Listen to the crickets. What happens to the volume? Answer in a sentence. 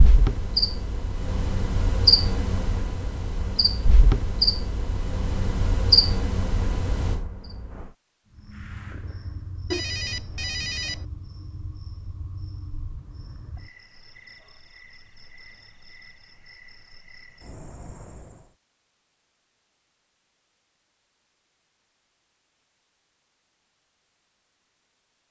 The volume of the crickets goes down.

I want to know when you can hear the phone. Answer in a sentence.
The phone can be heard from 9.7 to 11.1 s.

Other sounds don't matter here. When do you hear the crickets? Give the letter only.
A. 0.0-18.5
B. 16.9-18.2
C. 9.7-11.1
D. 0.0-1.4
A.